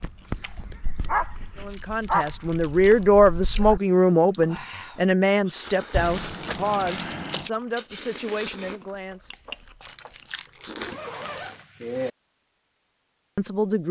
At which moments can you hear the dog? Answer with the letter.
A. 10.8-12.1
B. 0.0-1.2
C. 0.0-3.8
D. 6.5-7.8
C.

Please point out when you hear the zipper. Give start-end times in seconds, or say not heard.
10.8-12.1.